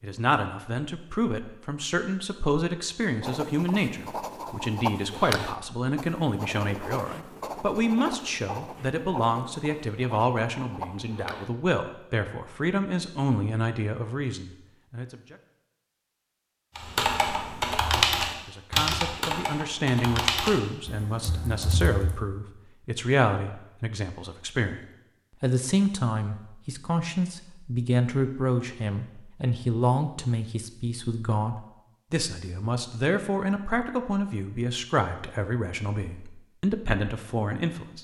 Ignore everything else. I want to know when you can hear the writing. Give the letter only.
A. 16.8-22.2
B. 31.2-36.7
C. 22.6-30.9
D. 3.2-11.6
D.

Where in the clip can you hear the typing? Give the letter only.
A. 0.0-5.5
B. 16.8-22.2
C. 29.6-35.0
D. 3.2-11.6
B.